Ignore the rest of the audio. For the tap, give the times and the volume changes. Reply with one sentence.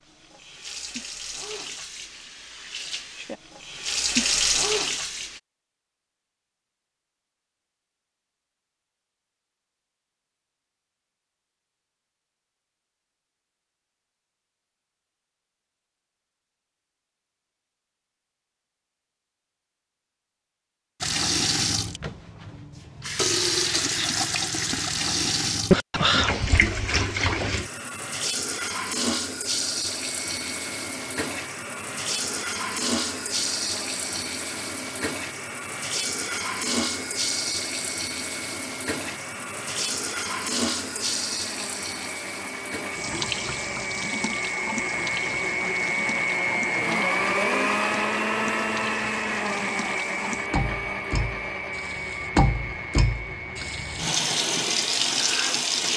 The tap can be heard from 0.1 to 5.4 s, getting louder; and from 21.0 to 55.9 s, getting quieter then louder.